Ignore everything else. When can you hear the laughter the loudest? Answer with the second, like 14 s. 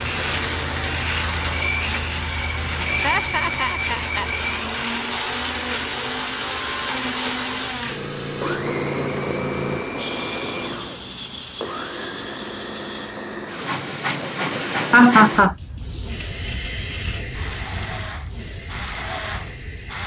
15 s.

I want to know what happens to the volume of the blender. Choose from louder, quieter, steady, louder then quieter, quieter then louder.
quieter.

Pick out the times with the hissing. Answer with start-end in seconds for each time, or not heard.
0.0-20.0.